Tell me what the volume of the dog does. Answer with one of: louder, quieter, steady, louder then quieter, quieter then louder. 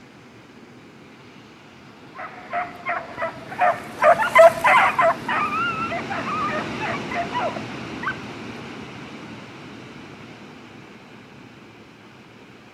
louder then quieter.